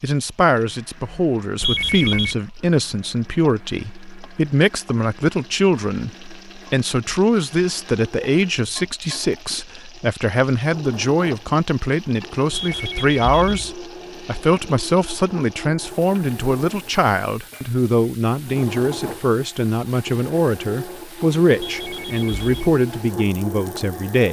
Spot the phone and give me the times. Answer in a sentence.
You can hear the phone from 1.6 to 2.4 s, from 12.5 to 13.8 s and from 21.6 to 22.8 s.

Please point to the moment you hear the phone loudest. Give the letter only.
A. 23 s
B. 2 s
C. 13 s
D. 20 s
B.